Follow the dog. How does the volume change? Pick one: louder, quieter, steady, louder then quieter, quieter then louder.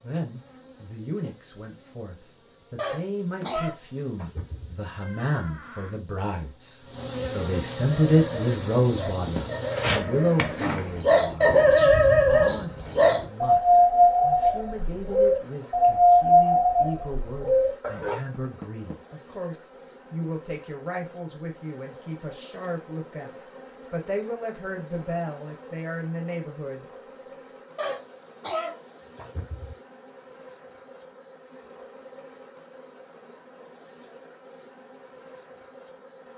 louder.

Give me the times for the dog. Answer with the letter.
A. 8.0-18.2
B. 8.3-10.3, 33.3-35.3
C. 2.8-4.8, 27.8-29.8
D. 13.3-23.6
A.